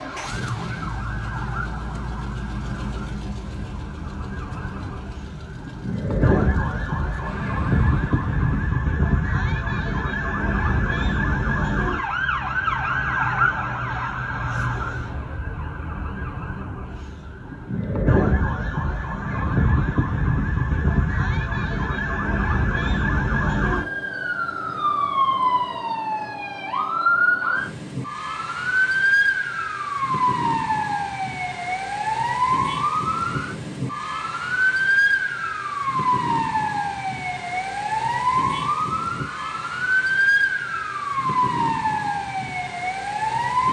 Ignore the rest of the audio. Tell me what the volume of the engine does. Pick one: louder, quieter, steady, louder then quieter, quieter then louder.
quieter.